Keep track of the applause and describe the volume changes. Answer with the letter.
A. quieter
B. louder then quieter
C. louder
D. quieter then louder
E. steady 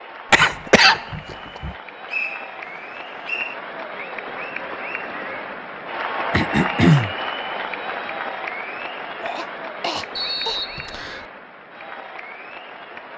B.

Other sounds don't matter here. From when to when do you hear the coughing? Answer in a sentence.
The coughing can be heard from 0.3 to 1.7 s, from 6.3 to 7.1 s and from 9.2 to 10.6 s.